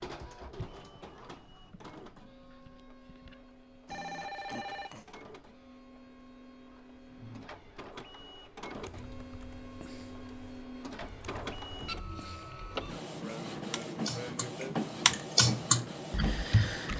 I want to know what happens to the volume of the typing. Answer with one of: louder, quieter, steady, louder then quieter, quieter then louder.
louder.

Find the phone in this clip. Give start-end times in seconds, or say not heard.
3.9-5.1.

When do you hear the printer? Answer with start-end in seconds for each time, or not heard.
0.0-16.9.